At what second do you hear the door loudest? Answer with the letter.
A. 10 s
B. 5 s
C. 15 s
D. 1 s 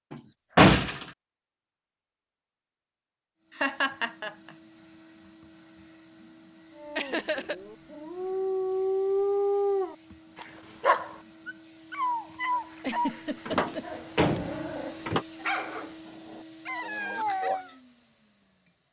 D.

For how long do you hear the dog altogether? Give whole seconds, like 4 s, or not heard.
11 s.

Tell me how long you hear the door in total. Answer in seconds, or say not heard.
3 s.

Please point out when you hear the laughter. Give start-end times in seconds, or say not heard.
3.5-4.3, 7.0-7.5, 12.8-13.8.